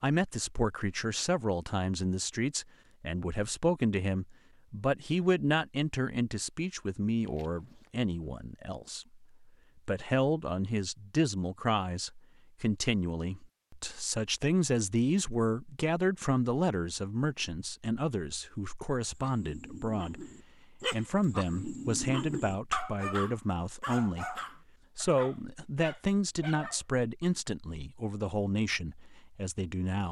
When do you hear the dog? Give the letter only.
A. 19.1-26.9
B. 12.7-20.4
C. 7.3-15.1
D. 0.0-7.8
A.